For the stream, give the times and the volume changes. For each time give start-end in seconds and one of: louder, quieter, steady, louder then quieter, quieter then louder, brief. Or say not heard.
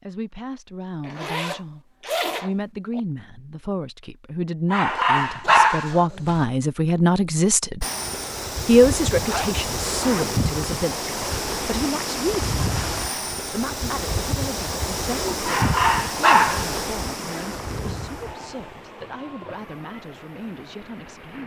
7.8-21.4 quieter.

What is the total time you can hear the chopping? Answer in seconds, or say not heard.
not heard.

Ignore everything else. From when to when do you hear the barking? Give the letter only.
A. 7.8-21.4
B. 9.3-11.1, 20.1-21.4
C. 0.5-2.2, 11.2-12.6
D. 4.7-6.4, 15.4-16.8
D.